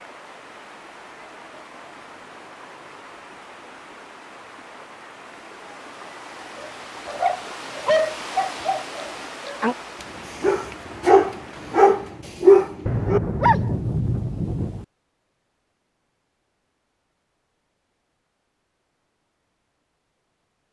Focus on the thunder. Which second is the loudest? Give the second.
14 s.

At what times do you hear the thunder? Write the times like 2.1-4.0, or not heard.
12.8-14.8.